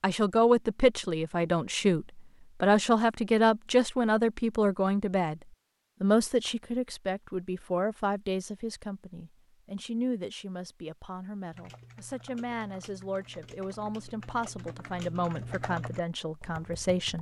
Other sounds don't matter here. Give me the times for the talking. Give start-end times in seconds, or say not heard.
0.0-5.4, 6.0-17.1.